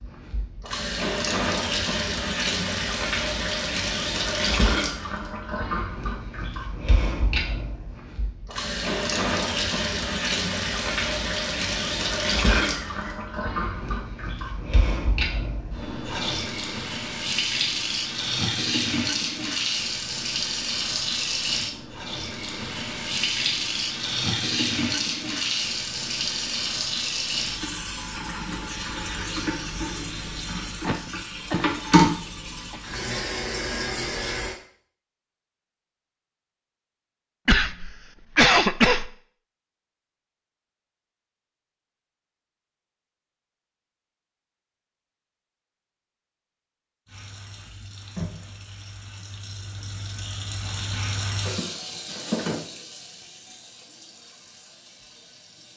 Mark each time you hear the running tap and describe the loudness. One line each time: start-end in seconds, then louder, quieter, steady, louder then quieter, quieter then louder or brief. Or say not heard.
0.0-34.5 steady
47.0-55.7 louder then quieter.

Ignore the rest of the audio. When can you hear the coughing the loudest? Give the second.
39 s.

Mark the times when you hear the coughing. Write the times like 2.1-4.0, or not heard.
12.4-13.2, 30.9-32.8, 37.5-39.1.